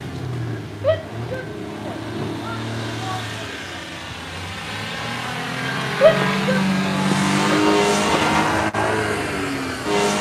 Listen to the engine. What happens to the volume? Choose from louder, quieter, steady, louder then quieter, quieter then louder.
louder.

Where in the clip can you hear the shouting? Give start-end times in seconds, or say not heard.
0.8-3.3, 6.0-6.7.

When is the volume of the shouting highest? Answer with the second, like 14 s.
6 s.